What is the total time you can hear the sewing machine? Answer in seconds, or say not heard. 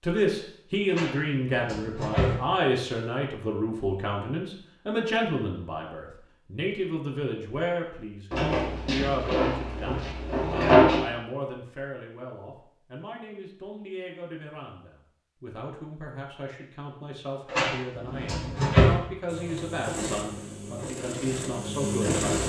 3 s.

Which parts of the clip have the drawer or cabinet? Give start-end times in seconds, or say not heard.
0.9-2.4, 8.3-11.1, 17.5-18.9.